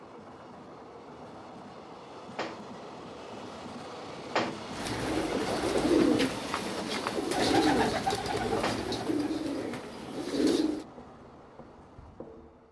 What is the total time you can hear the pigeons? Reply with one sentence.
You can hear the pigeons for 6 seconds altogether.